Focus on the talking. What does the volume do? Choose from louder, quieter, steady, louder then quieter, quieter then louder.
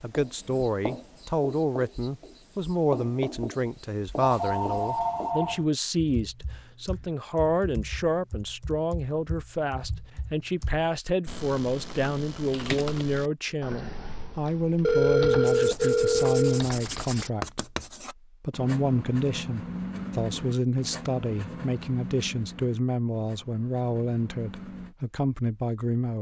steady.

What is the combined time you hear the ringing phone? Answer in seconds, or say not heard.
3 s.